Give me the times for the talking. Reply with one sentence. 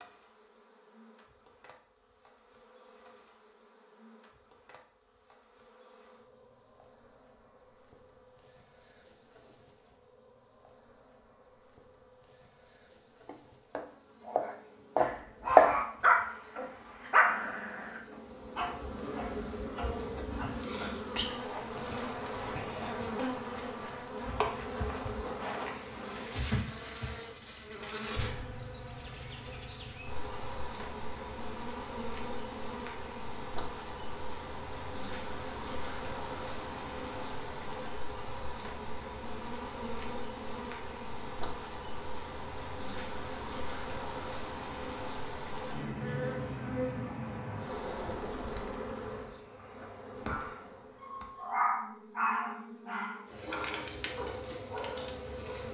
The talking can't be heard in this clip.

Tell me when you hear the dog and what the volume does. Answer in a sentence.
The dog can be heard from 14.9 to 20.8 s, getting quieter; and from 50.2 to 55.6 s, getting louder then quieter.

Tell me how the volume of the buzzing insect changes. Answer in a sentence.
The volume of the buzzing insect goes up.